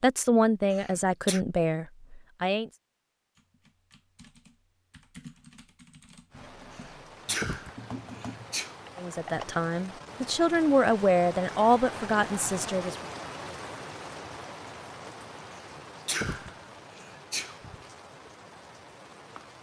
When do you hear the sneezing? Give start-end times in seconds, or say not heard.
0.7-1.4, 6.7-8.8, 15.6-17.8.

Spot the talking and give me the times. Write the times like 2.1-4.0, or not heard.
0.0-2.7, 8.9-13.1.